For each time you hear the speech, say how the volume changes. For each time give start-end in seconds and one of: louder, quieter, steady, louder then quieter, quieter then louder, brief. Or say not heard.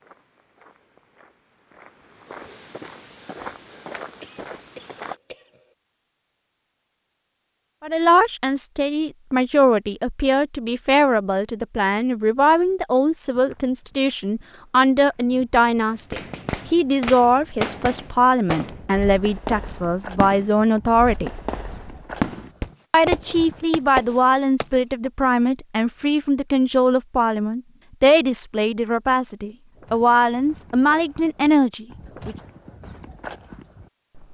7.8-21.3 steady
22.9-32.4 steady.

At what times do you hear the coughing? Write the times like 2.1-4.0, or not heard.
4.2-5.8.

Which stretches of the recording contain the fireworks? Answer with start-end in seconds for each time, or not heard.
16.1-25.1.